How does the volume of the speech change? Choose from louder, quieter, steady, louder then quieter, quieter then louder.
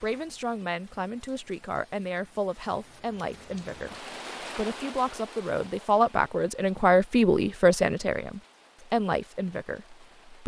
louder then quieter.